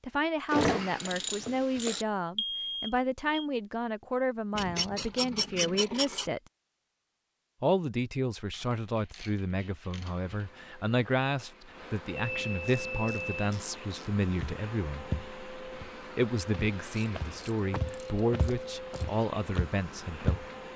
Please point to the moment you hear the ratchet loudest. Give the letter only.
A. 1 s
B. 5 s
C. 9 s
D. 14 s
A.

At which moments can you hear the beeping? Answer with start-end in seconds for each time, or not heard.
2.4-3.5, 12.1-13.4.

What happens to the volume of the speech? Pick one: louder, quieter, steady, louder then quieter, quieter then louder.
steady.